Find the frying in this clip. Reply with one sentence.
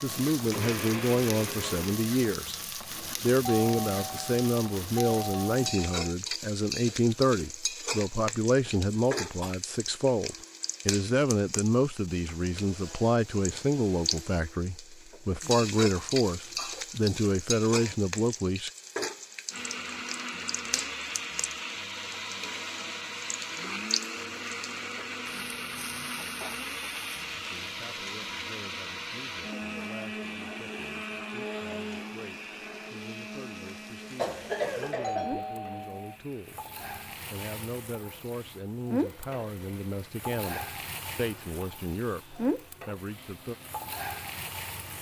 You can hear the frying from 0.0 to 44.9 s.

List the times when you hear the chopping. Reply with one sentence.
You can't hear the chopping here.